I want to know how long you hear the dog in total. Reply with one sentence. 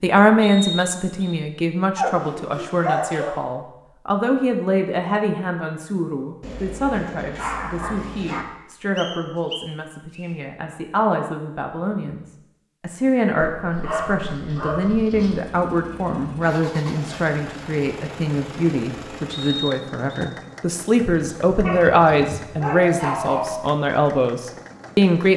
You can hear the dog for 8 seconds altogether.